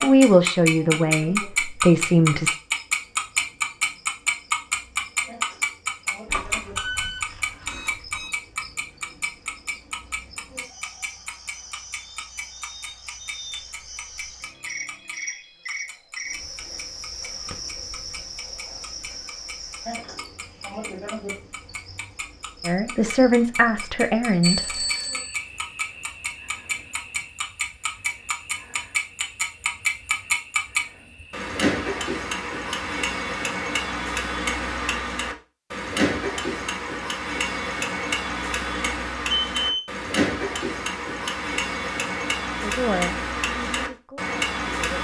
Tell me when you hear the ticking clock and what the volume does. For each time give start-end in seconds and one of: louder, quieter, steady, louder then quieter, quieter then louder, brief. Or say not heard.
0.0-44.9 quieter then louder.